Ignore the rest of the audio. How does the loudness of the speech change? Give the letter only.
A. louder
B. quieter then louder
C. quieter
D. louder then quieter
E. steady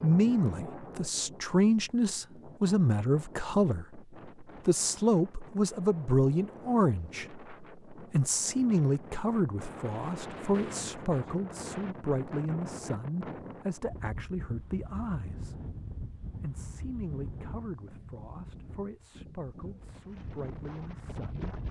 C.